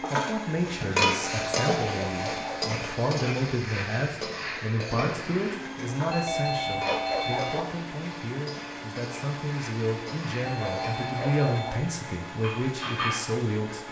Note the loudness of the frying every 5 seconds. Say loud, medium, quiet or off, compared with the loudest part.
loud, medium, medium.